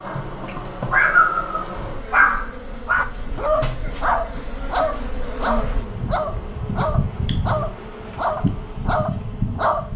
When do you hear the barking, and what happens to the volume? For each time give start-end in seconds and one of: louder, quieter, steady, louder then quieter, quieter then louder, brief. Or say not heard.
0.1-9.8 quieter.